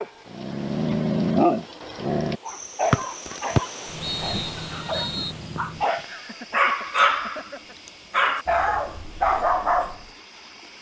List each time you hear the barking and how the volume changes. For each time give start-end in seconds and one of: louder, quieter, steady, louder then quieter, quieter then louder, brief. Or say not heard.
0.0-7.5 quieter then louder
8.1-10.1 brief.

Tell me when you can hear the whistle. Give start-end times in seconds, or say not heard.
2.9-5.3.